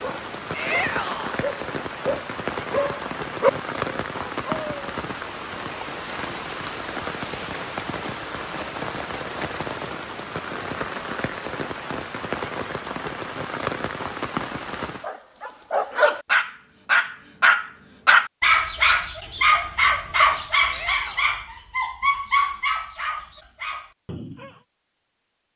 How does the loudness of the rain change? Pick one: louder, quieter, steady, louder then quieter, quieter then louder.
steady.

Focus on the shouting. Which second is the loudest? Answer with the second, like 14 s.
1 s.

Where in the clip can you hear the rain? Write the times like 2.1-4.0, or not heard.
0.0-15.1.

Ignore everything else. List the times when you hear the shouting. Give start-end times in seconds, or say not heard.
0.5-1.4, 20.6-21.4.